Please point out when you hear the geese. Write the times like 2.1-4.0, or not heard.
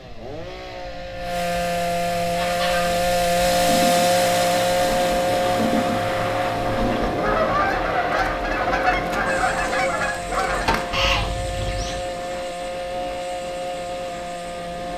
2.2-12.1.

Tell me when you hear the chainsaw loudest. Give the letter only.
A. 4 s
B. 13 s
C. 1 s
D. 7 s
A.